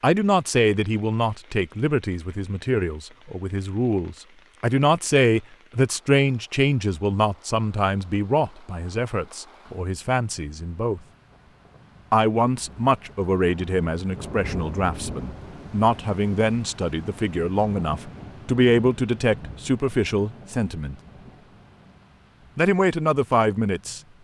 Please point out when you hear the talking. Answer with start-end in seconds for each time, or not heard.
0.0-11.0, 12.1-20.9, 22.6-24.0.